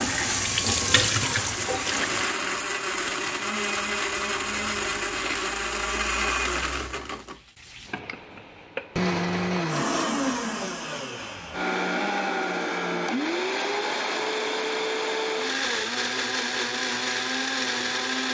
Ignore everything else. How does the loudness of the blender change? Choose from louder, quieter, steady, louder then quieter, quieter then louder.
steady.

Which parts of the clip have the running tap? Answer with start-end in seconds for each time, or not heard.
0.0-2.3.